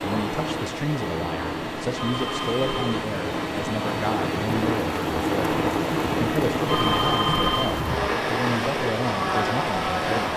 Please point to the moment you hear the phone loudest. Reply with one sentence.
The loudest moment of the phone is at 7 seconds.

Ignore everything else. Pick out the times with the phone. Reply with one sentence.
The phone can be heard from 1.9 to 3.0 s and from 6.7 to 7.8 s.